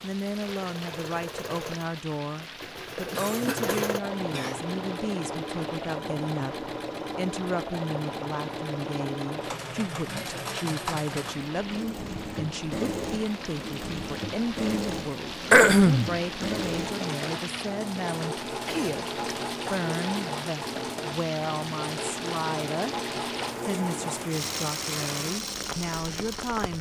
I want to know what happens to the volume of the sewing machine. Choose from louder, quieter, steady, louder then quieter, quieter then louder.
steady.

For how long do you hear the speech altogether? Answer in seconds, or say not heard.
26 s.